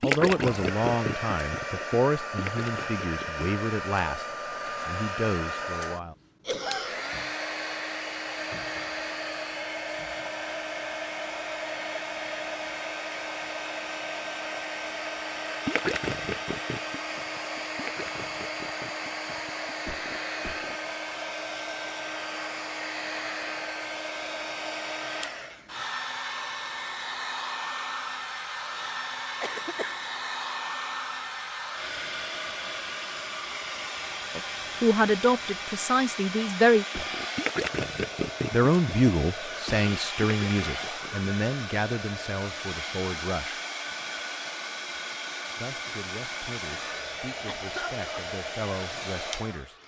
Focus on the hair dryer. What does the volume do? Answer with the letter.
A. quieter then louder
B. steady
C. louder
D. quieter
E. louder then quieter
B.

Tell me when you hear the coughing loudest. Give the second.
7 s.